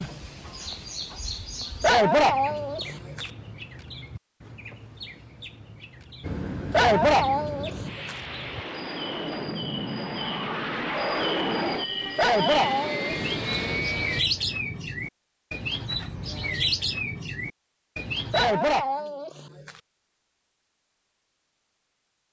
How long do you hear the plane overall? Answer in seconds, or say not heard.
8 s.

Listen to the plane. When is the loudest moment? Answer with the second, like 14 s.
11 s.